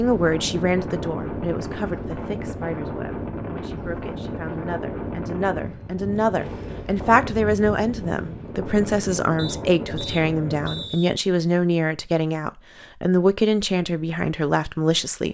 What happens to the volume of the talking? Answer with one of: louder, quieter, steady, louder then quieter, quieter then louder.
louder.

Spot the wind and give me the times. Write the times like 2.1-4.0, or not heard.
0.0-10.9.